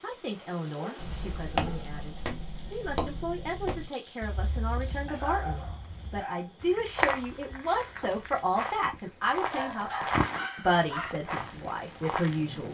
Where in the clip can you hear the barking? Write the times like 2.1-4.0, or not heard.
0.8-1.9, 5.0-6.9, 9.4-11.2.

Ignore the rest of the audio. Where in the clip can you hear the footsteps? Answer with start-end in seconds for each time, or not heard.
0.9-12.4.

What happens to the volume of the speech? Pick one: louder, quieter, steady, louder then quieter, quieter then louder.
louder.